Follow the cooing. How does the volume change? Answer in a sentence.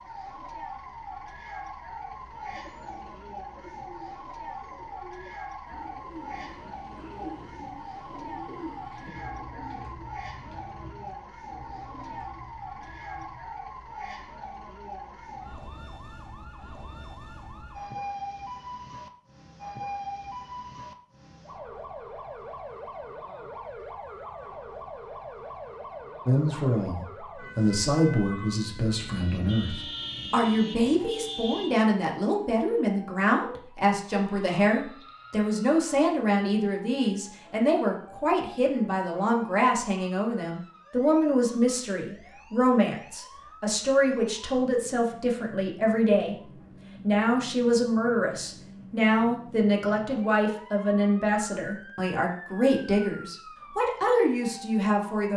The volume of the cooing goes up, then down.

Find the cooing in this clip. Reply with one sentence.
You can hear the cooing from 2.3 to 13.5 s.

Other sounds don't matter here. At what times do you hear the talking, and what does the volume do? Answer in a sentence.
You can hear the talking from 26.2 to 55.3 s, at a steady volume.